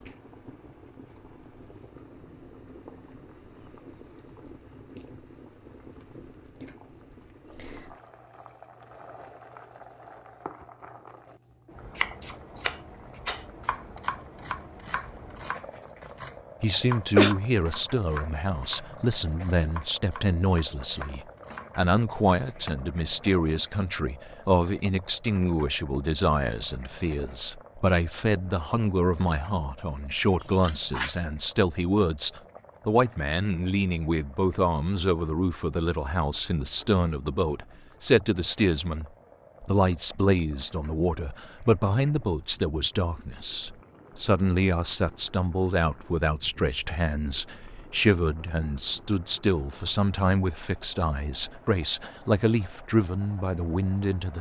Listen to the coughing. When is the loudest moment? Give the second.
17 s.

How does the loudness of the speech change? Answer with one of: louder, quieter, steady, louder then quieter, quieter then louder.
steady.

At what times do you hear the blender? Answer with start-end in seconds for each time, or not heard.
not heard.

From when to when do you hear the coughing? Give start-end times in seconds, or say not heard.
16.6-17.4, 30.4-31.1.